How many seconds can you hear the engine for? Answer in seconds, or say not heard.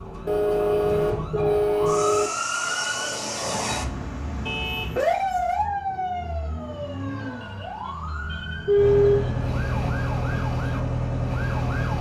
3 s.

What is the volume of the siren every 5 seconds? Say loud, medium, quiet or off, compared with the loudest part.
loud, loud, medium.